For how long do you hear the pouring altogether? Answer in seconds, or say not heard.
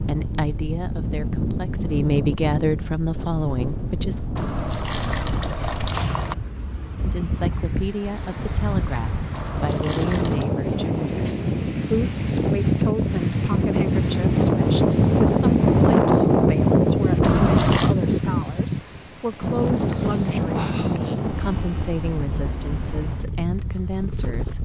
4 s.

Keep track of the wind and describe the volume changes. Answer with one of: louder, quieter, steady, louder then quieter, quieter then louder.
louder then quieter.